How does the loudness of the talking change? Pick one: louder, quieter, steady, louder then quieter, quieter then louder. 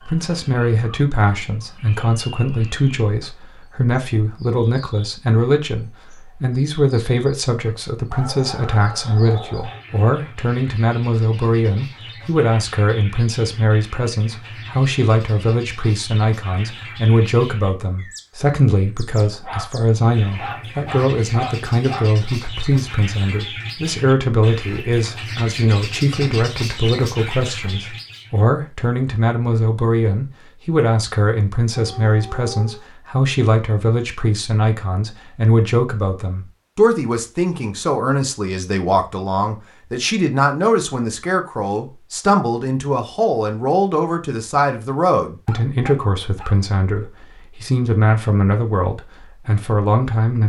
steady.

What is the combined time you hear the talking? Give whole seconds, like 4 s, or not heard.
50 s.